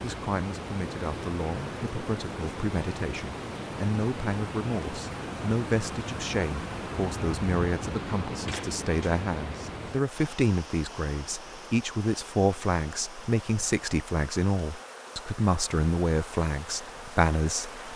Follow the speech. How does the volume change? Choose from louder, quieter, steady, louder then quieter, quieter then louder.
louder.